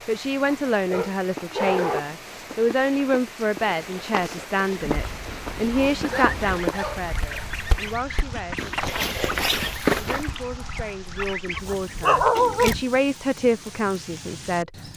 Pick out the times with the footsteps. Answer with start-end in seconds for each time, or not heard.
1.2-10.2.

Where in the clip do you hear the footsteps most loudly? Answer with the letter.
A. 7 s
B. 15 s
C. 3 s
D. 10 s
D.